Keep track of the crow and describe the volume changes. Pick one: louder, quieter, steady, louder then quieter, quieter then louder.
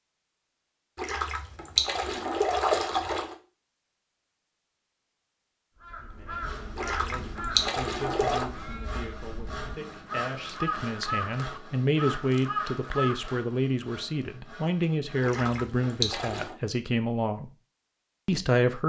quieter then louder.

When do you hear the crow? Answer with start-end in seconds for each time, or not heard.
5.8-13.4.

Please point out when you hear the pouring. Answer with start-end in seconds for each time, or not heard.
0.9-3.4, 6.8-8.4, 15.2-16.6.